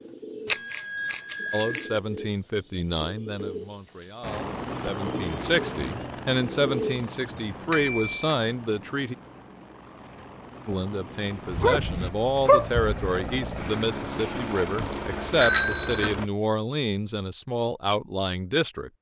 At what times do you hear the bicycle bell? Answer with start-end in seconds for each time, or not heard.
0.5-2.0, 7.7-8.3, 14.2-16.1.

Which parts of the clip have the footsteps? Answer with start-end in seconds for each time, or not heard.
not heard.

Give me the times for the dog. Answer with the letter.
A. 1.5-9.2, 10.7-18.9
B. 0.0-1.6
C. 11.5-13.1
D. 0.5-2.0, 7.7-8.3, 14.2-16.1
C.